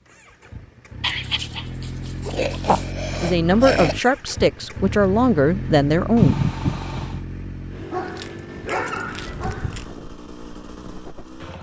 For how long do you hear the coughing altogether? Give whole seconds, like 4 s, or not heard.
3 s.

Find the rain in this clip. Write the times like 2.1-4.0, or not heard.
not heard.